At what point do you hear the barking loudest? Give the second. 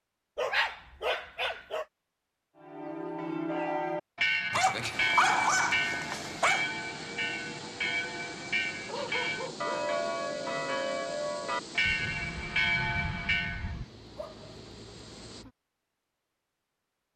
5 s.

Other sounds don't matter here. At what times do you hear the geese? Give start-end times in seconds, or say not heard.
11.8-13.8.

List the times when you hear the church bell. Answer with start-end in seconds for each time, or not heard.
2.6-13.8.